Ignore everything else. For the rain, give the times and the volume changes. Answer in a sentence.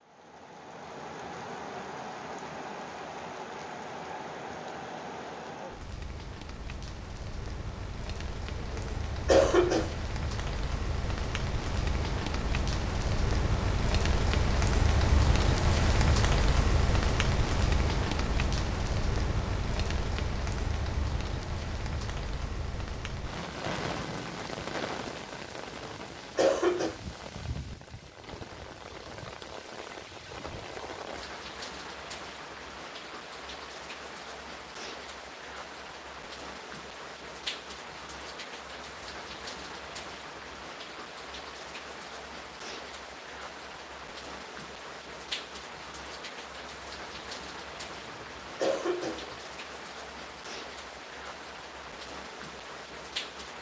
You can hear the rain from 0.0 to 53.5 s, getting louder then quieter.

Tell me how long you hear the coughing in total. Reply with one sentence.
You can hear the coughing for 4 seconds altogether.